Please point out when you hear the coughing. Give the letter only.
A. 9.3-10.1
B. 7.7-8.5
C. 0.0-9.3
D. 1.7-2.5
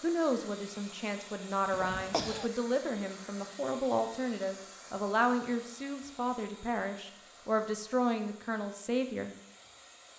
D.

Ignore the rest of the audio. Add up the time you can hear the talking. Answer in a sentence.
The talking can be heard for 9 seconds in total.